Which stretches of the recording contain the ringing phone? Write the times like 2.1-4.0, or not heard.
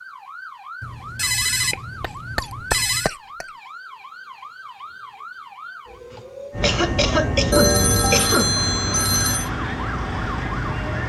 0.8-3.1, 7.5-9.5.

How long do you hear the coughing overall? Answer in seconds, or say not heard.
4 s.